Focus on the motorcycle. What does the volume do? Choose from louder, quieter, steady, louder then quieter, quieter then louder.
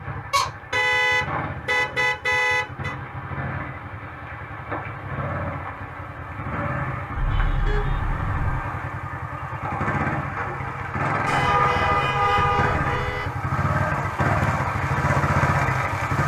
louder.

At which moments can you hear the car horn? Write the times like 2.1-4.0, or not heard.
0.3-3.0, 7.2-8.6, 11.2-13.2.